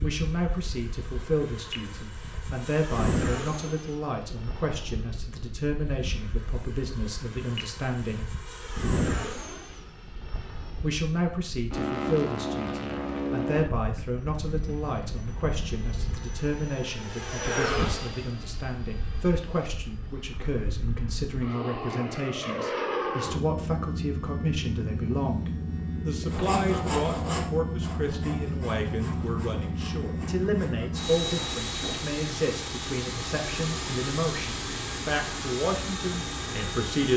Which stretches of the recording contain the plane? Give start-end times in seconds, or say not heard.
0.0-37.1.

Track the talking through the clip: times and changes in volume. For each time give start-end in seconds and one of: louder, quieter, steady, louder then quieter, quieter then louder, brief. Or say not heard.
0.0-8.3 steady
10.8-37.1 steady.